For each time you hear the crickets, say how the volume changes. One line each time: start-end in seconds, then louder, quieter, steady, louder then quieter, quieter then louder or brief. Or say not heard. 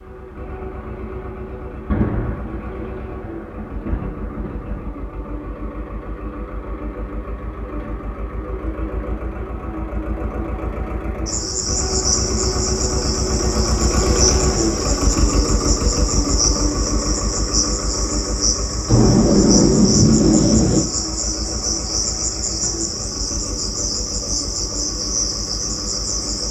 11.2-26.4 steady.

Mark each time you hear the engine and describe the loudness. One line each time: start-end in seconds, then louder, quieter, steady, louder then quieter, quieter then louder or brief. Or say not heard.
0.0-26.4 louder then quieter.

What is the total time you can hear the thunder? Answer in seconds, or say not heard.
5 s.